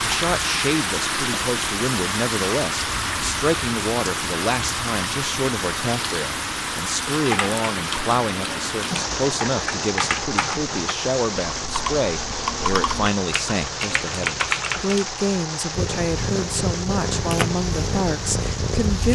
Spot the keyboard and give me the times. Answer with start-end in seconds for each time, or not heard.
7.2-15.1.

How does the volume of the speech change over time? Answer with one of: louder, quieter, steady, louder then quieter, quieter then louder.
steady.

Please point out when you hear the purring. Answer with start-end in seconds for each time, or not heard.
15.7-19.1.